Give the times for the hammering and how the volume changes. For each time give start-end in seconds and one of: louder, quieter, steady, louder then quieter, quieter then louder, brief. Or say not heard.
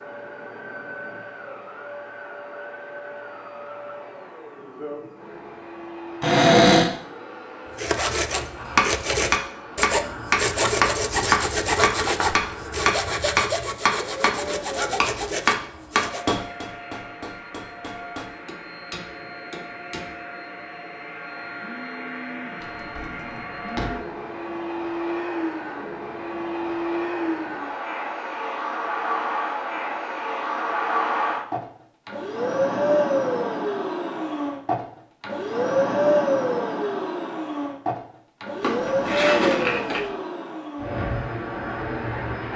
8.6-20.1 quieter.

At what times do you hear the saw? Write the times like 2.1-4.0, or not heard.
7.7-16.2.